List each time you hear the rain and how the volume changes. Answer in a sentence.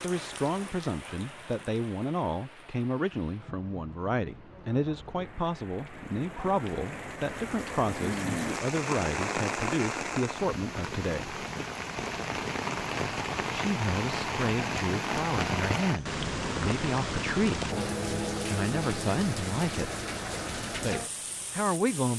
You can hear the rain from 0.0 to 22.1 s, getting louder.